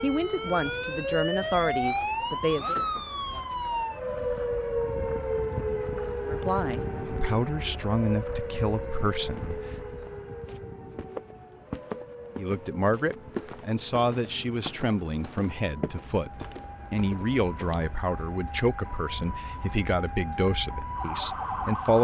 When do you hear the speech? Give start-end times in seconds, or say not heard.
0.0-2.8, 6.2-9.9, 12.3-21.9.